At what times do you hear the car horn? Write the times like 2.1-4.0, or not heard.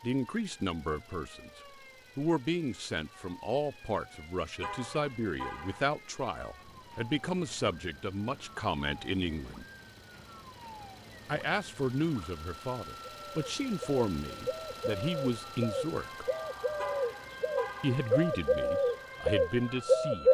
4.6-5.9, 16.8-18.1.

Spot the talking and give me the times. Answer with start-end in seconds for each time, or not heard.
0.0-9.7, 11.2-16.2, 17.8-20.2.